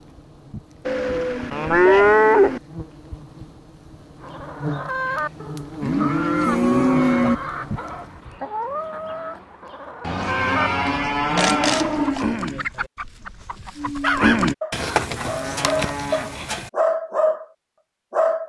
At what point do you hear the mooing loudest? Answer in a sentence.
The volume of the mooing peaks at 2 seconds.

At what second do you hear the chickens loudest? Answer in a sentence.
The loudest moment of the chickens is at 14 seconds.